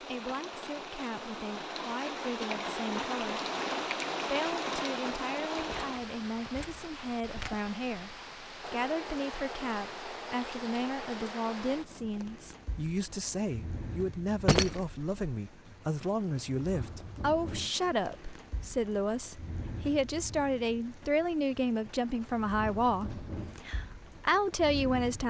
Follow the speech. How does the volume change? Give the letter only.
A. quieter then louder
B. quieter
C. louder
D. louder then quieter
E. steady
C.